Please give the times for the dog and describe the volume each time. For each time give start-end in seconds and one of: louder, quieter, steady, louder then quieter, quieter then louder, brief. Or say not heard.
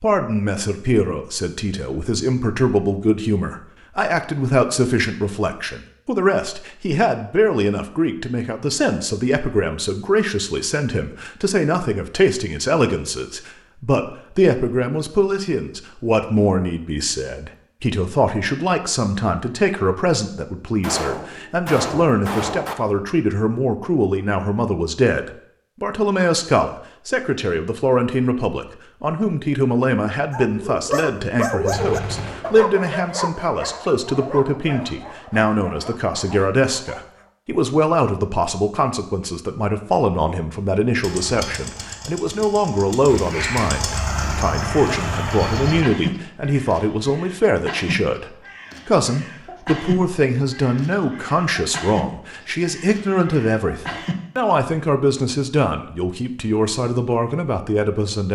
30.3-37.3 quieter.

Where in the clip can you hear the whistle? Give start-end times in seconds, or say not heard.
not heard.